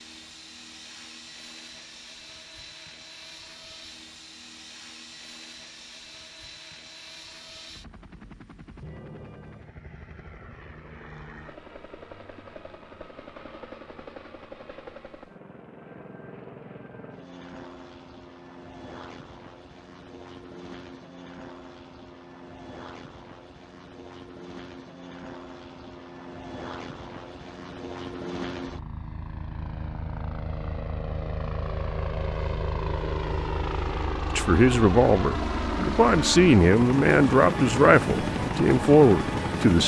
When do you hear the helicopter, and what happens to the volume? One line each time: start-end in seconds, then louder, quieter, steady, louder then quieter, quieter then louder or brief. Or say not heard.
0.0-39.8 louder.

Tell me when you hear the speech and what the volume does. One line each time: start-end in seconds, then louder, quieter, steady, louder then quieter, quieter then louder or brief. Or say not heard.
34.4-39.8 steady.